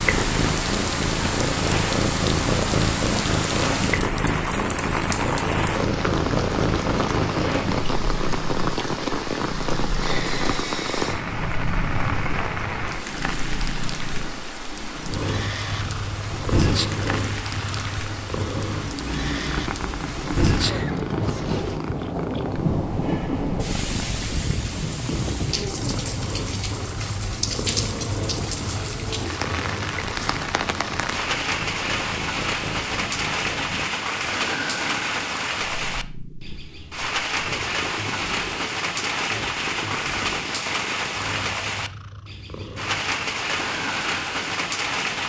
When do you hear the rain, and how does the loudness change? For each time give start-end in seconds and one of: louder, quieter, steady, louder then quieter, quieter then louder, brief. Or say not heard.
0.0-45.2 steady.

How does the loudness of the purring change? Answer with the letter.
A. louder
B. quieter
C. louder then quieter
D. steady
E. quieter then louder
B.